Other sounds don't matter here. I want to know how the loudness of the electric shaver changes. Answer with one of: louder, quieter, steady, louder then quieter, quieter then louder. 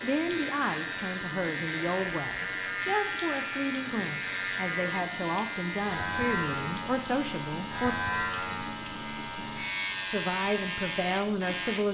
steady.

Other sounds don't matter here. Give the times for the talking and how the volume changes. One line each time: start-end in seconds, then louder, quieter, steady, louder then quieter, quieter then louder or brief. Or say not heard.
0.0-8.0 steady
10.1-11.9 brief.